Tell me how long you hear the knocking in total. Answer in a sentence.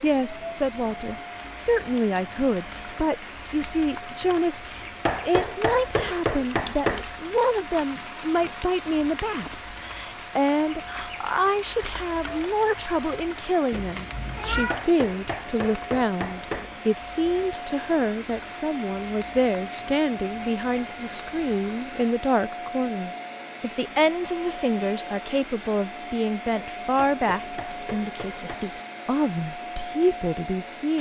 The knocking can be heard for 6 seconds in total.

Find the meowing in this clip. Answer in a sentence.
The meowing can be heard from 13.7 to 14.8 s.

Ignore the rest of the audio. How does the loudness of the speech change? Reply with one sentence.
The loudness of the speech stays about the same.